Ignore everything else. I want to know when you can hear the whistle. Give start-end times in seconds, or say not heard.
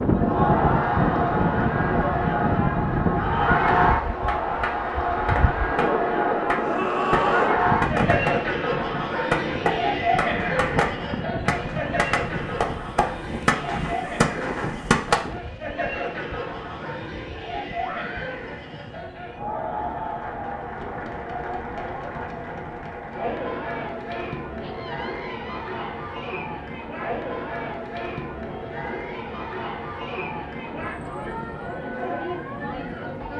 not heard.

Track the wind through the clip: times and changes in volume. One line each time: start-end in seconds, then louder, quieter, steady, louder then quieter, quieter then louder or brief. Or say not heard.
0.0-33.3 quieter.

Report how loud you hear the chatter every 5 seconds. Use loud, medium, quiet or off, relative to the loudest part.
loud, loud, medium, medium, medium, medium, medium.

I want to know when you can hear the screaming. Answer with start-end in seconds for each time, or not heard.
6.5-7.6, 17.8-18.4, 24.6-25.7.